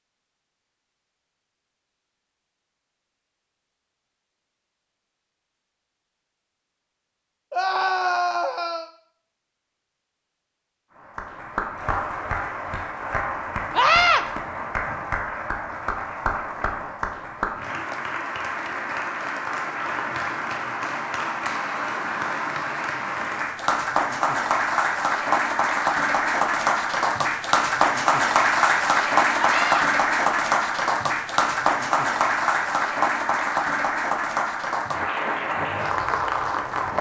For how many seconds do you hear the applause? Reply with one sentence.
The applause can be heard for 26 seconds in total.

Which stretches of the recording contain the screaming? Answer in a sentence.
The screaming can be heard from 7.5 to 8.9 s, from 13.7 to 14.2 s and from 29.4 to 29.9 s.